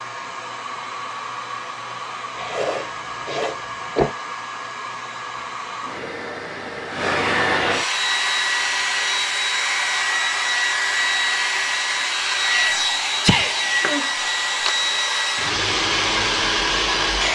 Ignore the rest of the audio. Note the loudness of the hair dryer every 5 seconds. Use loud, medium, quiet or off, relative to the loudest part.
medium, loud, loud, loud.